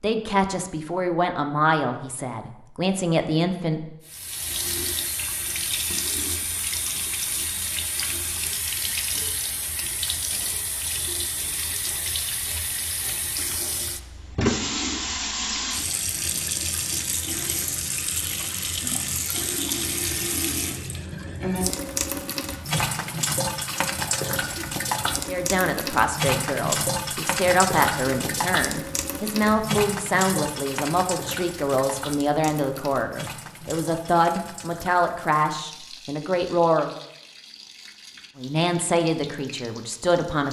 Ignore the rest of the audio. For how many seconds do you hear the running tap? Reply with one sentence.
The running tap can be heard for 36 seconds in total.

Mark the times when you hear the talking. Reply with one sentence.
The talking can be heard from 0.0 to 3.9 s, from 25.2 to 37.0 s and from 38.4 to 40.4 s.